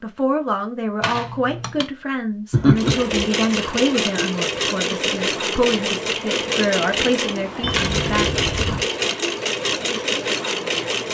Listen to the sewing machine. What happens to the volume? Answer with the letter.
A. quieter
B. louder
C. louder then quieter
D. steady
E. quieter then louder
D.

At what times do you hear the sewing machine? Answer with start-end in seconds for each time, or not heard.
2.8-11.0.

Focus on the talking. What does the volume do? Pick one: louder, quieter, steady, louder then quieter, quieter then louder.
steady.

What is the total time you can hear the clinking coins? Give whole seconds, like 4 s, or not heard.
2 s.